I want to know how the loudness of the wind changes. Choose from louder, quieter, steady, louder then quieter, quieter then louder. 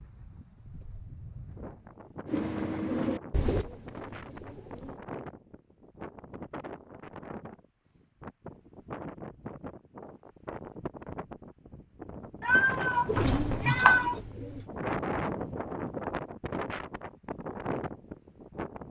louder.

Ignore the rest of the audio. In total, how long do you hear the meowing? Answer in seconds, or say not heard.
2 s.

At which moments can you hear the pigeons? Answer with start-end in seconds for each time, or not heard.
2.2-5.0, 13.1-14.7.